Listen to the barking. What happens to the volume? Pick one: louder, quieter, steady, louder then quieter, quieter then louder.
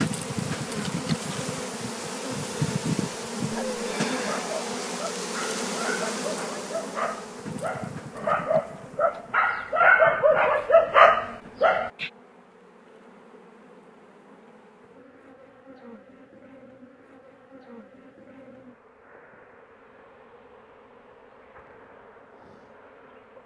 louder.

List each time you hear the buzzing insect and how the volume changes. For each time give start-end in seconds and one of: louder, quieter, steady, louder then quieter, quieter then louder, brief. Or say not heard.
0.0-23.4 quieter.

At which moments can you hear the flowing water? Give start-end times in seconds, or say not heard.
not heard.